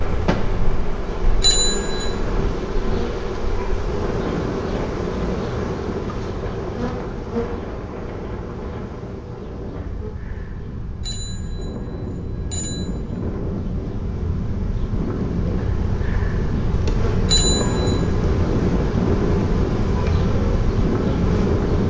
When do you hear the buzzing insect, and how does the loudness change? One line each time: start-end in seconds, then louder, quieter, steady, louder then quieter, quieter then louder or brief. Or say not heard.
0.0-21.8 quieter then louder.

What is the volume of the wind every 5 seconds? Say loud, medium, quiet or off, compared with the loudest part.
medium, medium, medium, loud, loud.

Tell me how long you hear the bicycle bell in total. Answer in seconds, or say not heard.
3 s.